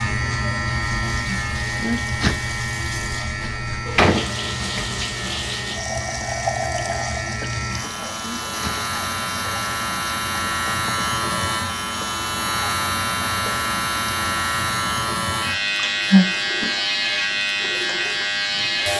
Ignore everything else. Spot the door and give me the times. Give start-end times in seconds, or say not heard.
3.4-4.8.